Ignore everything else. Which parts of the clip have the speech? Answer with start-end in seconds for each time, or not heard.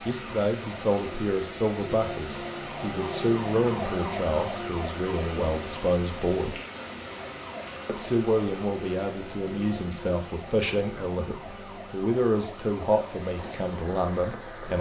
0.0-6.5, 7.8-14.7.